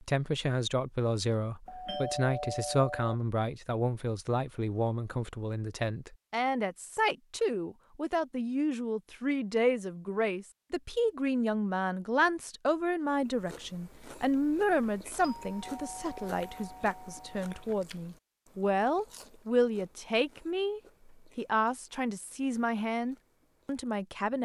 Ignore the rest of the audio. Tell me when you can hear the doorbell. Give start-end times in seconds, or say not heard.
1.6-3.1, 15.2-17.7.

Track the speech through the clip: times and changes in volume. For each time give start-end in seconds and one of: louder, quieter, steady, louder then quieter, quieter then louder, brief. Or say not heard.
0.0-24.3 steady.